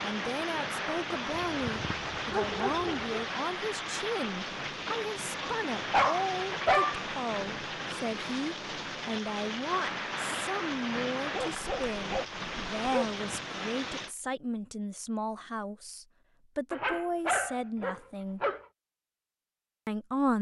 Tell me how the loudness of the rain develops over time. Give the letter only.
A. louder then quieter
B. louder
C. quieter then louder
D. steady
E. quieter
D.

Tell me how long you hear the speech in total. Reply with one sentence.
You can hear the speech for 19 seconds altogether.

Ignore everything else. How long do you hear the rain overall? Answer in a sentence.
The rain can be heard for 14 seconds in total.